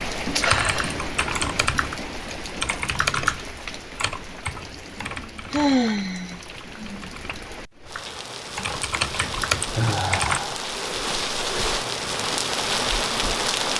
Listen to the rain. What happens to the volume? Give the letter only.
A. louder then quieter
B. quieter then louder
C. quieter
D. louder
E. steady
B.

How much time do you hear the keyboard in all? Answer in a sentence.
You can hear the keyboard for 10 seconds altogether.